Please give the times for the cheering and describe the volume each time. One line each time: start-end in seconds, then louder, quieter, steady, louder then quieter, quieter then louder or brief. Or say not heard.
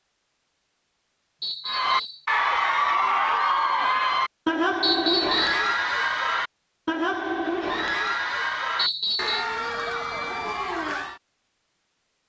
1.6-11.2 quieter.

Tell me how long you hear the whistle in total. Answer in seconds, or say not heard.
2 s.